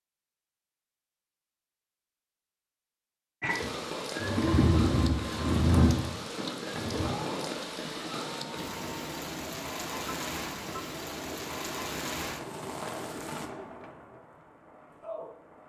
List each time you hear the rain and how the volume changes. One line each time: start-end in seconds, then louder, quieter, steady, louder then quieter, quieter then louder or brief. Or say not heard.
3.5-15.6 quieter.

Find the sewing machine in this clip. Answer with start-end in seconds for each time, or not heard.
3.4-14.2.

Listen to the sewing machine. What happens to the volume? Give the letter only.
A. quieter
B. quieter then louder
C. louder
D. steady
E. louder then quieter
A.